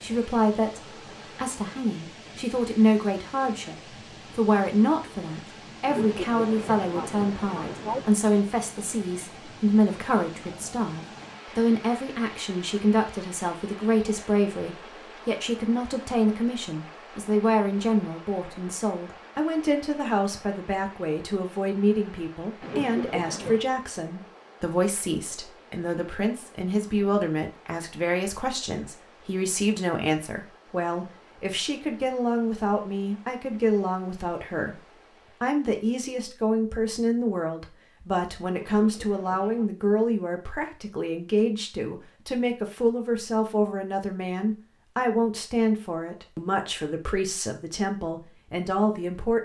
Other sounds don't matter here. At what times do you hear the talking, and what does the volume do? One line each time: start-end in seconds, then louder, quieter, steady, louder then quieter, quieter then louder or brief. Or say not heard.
0.0-49.4 steady.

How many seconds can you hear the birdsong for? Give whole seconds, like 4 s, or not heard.
not heard.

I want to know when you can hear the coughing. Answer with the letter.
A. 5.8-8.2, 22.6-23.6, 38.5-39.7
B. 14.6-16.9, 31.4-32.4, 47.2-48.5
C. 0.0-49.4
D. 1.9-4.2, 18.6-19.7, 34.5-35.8
A.